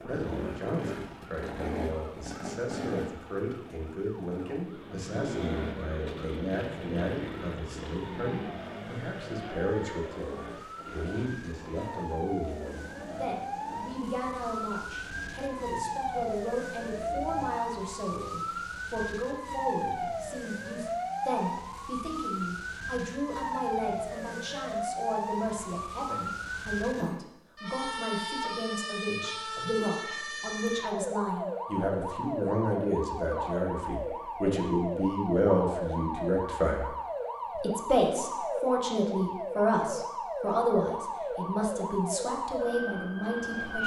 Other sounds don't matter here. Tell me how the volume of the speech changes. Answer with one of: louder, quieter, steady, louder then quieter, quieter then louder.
louder.